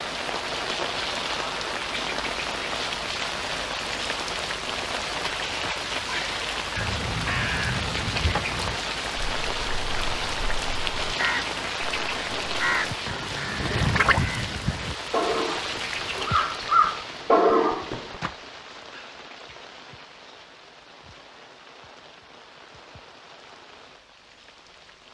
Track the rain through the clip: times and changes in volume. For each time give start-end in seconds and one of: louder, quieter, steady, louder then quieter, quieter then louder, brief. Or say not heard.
0.0-25.1 quieter.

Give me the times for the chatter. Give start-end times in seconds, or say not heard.
not heard.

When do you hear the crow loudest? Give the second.
17 s.